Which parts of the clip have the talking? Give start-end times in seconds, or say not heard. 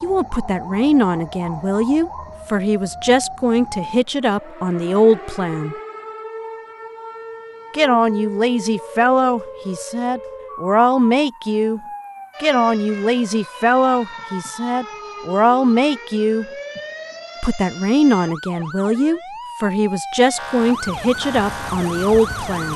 0.0-5.8, 7.7-11.8, 12.4-16.4, 17.4-22.7.